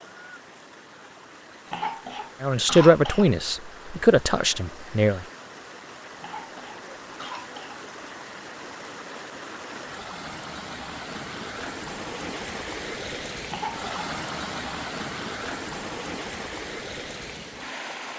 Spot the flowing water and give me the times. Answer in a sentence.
You can hear the flowing water from 0.0 to 18.1 s.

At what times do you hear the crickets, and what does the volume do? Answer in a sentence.
The crickets can't be heard in this clip.